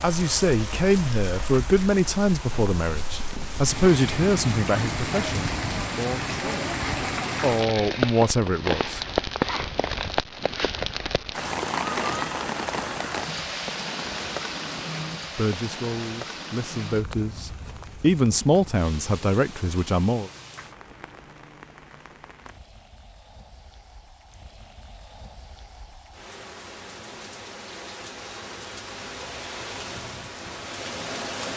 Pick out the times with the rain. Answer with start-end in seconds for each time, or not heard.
0.0-31.5.